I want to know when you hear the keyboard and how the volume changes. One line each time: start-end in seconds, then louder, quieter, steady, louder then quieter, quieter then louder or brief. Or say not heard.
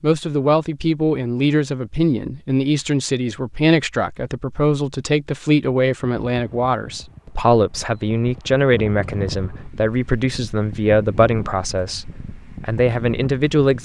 not heard.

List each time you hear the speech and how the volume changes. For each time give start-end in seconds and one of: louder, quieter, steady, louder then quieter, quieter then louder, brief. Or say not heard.
0.0-13.8 steady.